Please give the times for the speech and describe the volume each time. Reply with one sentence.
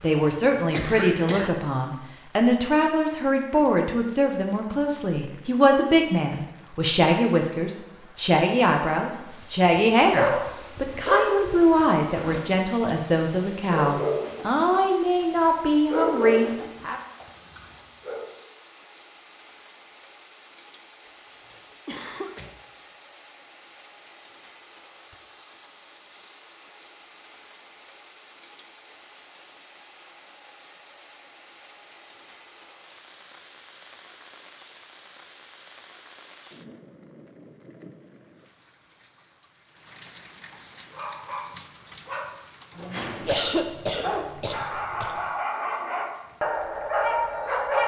The speech can be heard from 0.0 to 17.0 s, at a steady volume.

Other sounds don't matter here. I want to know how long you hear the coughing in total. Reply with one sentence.
You can hear the coughing for 4 seconds altogether.